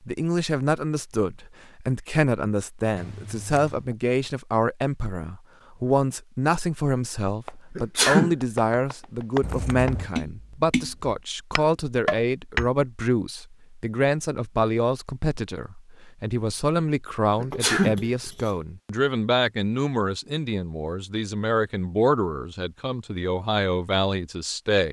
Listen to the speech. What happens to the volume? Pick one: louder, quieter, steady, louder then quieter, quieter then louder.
steady.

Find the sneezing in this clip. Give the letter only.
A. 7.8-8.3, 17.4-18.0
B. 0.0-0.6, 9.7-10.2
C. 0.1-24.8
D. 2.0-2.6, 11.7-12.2
A.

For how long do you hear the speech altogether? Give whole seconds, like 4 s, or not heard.
25 s.